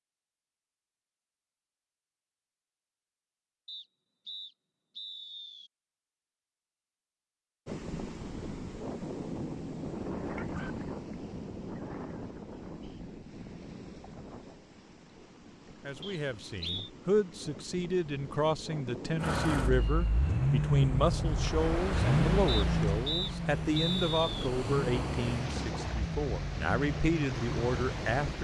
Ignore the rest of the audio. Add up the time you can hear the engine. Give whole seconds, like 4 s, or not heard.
9 s.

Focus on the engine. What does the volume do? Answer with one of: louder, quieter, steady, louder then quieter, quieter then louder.
quieter.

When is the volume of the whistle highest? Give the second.
24 s.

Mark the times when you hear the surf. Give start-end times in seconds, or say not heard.
7.7-28.3.